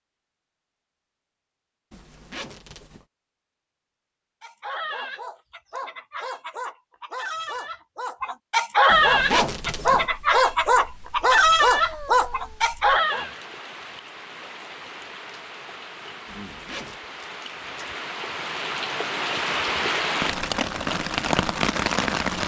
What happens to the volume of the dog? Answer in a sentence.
The loudness of the dog goes up.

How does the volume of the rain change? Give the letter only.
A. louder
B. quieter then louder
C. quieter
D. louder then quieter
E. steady
A.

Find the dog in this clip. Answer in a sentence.
You can hear the dog from 4.4 to 13.3 s.